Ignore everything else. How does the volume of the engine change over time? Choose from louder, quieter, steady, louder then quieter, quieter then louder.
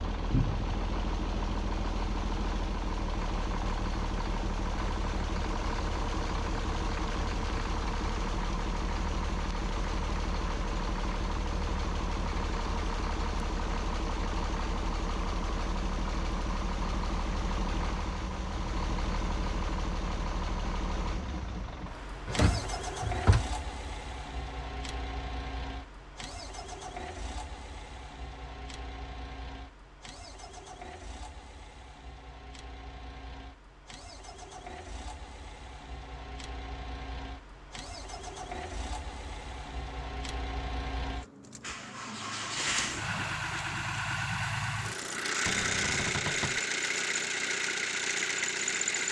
quieter then louder.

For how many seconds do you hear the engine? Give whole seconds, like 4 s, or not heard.
49 s.